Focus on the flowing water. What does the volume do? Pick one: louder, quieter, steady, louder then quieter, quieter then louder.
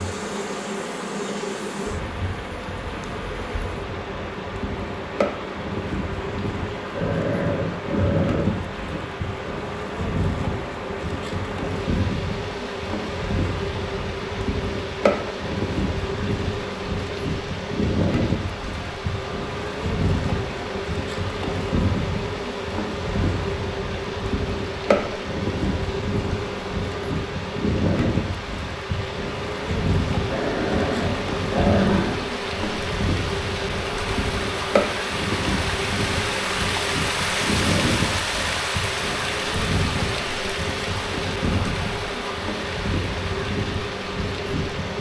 louder.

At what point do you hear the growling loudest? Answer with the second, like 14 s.
32 s.